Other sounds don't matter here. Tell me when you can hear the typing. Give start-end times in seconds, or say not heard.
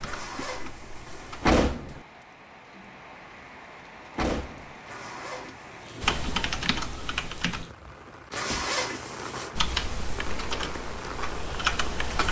0.0-1.6, 6.0-7.7, 9.6-12.2.